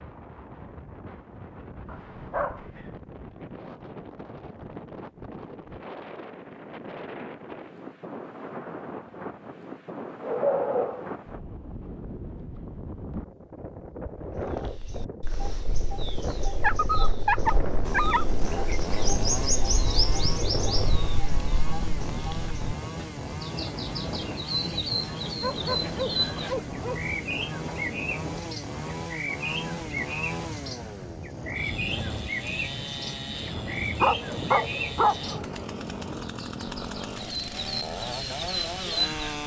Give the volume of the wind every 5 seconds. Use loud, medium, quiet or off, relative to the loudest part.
medium, loud, loud, loud, loud, loud, loud, medium.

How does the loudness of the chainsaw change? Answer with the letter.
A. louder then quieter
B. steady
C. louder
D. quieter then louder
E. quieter
B.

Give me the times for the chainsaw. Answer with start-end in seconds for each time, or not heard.
17.8-39.4.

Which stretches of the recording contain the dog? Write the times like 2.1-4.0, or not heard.
1.9-2.6, 10.2-11.2, 16.6-18.2, 25.4-27.1, 34.0-35.5.